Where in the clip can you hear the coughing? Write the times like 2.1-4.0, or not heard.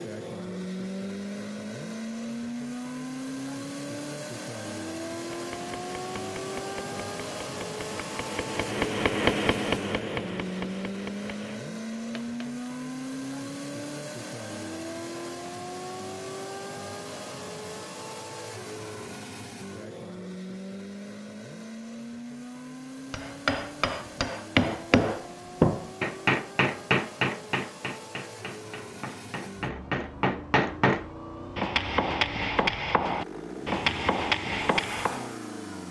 not heard.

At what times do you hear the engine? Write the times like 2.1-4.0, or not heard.
0.0-35.8.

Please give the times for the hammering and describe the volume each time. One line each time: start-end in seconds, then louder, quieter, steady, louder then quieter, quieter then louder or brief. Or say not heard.
5.3-12.5 louder then quieter
23.1-35.3 quieter then louder.